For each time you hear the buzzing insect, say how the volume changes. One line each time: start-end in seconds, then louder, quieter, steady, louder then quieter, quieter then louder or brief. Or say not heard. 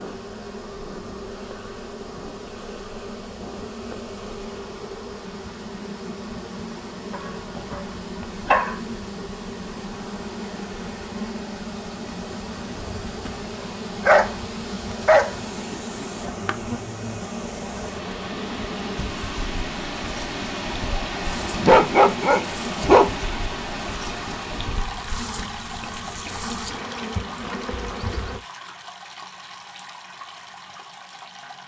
0.0-28.4 steady.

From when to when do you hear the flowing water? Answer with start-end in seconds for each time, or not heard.
0.0-31.6.